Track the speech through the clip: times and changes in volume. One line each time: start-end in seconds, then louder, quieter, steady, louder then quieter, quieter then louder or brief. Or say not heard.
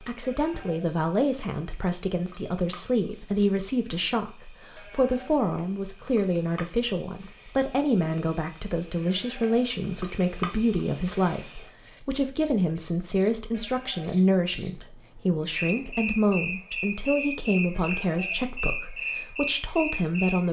0.0-20.4 steady.